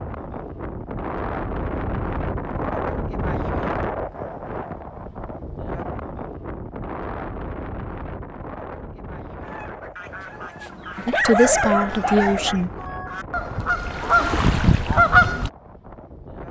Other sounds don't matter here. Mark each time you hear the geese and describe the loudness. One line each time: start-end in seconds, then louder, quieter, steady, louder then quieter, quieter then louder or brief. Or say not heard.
9.4-15.5 louder.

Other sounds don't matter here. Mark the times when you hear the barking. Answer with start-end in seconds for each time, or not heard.
10.1-12.8.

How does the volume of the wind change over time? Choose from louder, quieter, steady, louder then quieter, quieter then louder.
quieter.